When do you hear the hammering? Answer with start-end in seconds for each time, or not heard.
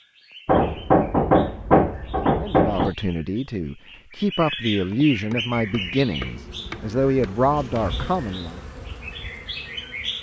0.5-2.9, 5.3-7.8.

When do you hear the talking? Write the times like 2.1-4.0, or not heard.
2.4-8.6.